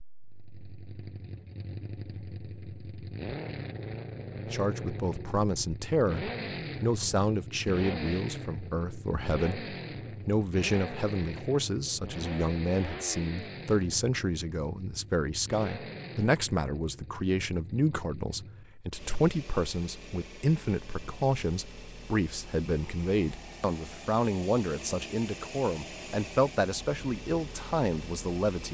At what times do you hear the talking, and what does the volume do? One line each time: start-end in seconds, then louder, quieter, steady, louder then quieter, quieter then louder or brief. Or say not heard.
4.5-28.6 steady.